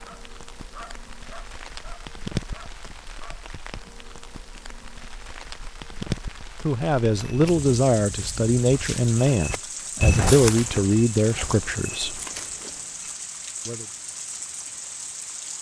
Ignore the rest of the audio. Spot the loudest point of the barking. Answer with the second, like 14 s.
1 s.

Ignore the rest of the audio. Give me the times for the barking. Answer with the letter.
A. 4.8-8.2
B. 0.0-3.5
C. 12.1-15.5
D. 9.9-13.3
B.